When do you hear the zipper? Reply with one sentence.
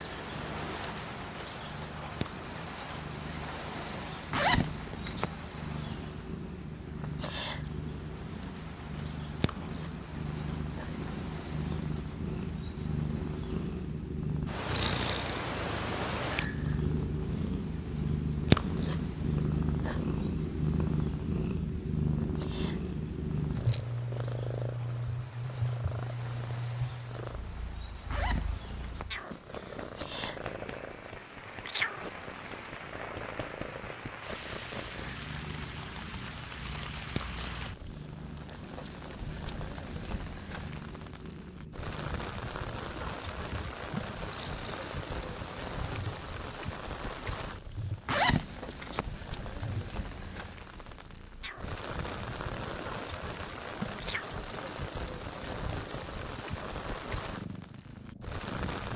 The zipper can be heard from 4.3 to 5.3 s, from 28.1 to 29.1 s and from 48.0 to 49.0 s.